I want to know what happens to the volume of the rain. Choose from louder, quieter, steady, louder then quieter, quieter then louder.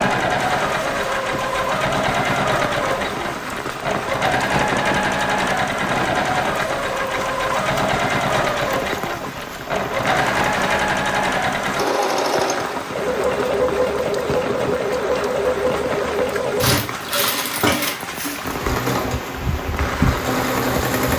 steady.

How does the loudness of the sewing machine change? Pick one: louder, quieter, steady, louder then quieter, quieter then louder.
steady.